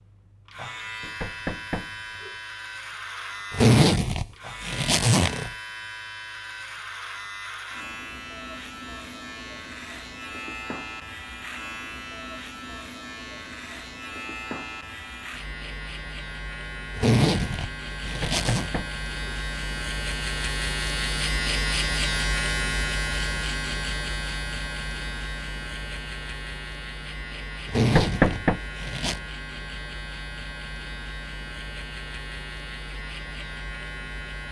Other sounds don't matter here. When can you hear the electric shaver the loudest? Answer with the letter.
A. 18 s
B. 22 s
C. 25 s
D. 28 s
B.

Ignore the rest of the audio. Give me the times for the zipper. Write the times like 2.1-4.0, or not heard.
3.5-5.5, 16.9-18.7, 27.6-29.2.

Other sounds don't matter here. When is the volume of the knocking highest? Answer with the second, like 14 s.
28 s.